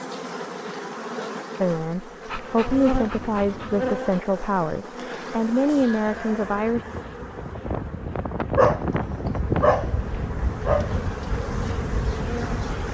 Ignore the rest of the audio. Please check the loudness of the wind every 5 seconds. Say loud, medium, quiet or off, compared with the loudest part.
medium, loud, loud.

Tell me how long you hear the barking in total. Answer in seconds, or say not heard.
4 s.